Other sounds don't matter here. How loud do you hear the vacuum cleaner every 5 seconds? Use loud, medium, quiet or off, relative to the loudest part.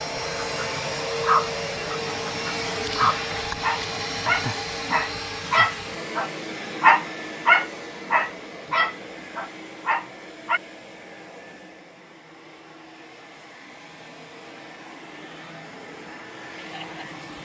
loud, medium, quiet, medium.